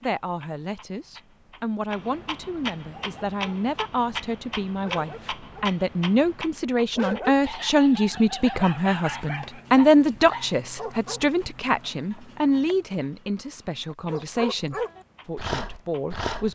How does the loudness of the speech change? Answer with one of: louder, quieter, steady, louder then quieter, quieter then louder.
louder then quieter.